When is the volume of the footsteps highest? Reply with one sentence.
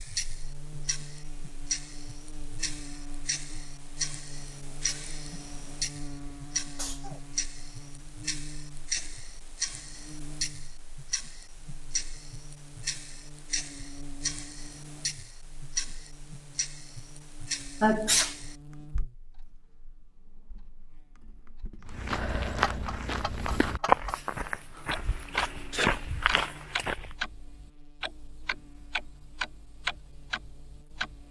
The loudest moment of the footsteps is at 24 seconds.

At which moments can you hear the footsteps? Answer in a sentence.
You can hear the footsteps from 21.9 to 27.1 s.